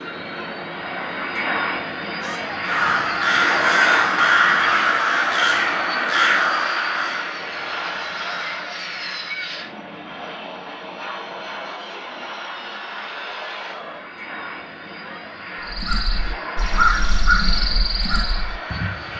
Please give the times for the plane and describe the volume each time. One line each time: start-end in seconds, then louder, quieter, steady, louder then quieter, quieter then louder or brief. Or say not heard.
0.0-19.1 quieter.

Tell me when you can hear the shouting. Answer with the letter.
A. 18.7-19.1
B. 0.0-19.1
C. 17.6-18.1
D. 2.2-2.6
D.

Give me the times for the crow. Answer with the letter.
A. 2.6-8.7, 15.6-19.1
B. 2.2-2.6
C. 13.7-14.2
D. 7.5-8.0
A.